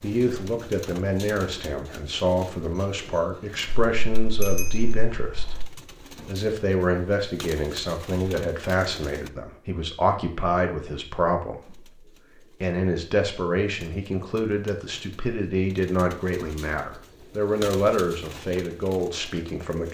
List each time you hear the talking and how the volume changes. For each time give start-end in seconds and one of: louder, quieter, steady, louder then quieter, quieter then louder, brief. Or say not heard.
0.0-19.9 steady.